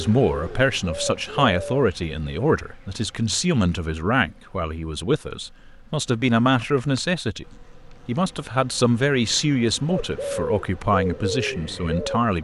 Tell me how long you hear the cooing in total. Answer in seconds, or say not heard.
4 s.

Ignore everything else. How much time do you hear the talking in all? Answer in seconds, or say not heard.
12 s.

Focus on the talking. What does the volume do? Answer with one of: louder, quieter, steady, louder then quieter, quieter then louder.
steady.